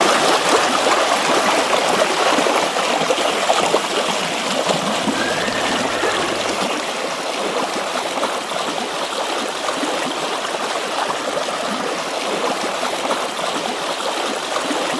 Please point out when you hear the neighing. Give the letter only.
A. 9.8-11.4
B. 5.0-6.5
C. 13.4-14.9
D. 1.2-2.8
B.